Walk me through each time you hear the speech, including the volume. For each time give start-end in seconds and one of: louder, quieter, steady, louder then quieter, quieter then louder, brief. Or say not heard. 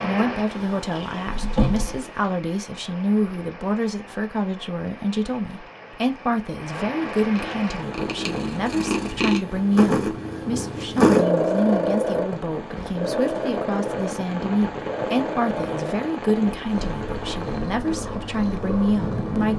0.0-19.5 steady.